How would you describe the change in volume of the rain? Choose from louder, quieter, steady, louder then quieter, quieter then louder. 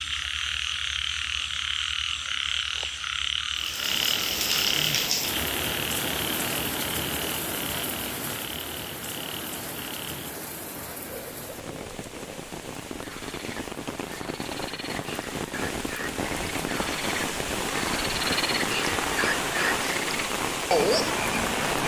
quieter then louder.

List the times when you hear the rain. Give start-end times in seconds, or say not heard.
3.5-21.8.